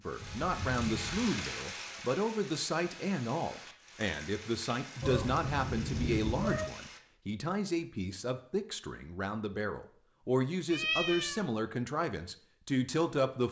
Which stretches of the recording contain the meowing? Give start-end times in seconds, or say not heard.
0.2-1.3, 5.0-6.7, 10.7-11.4.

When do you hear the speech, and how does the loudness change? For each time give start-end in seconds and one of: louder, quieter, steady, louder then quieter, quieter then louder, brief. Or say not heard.
0.1-13.4 steady.